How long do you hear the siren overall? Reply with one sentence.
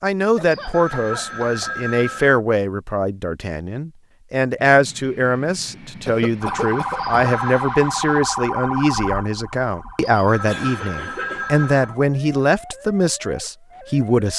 The siren can be heard for 8 seconds in total.